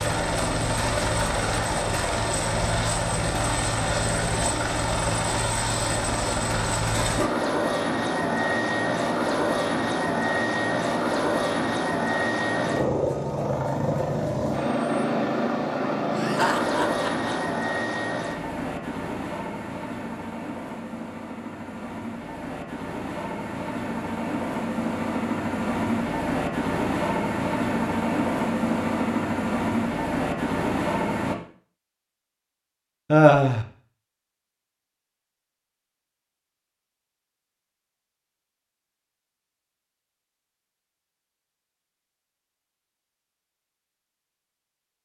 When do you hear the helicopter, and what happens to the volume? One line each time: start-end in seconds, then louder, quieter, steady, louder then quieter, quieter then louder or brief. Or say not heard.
0.0-31.4 quieter then louder.